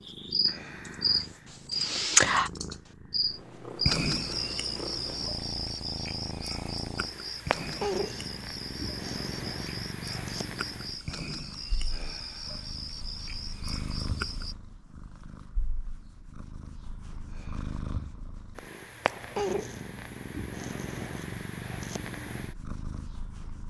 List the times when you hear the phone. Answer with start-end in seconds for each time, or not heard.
not heard.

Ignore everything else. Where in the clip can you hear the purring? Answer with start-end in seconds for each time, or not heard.
0.0-23.6.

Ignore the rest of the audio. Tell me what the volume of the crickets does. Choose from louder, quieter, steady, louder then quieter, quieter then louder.
quieter.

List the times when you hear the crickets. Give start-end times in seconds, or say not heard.
0.1-14.6.